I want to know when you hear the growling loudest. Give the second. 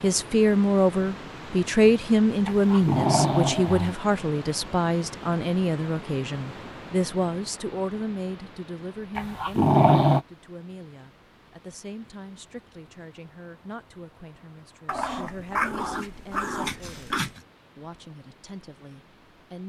10 s.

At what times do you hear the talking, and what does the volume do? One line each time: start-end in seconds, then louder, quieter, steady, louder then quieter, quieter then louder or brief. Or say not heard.
0.0-19.6 quieter.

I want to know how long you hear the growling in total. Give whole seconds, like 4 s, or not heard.
5 s.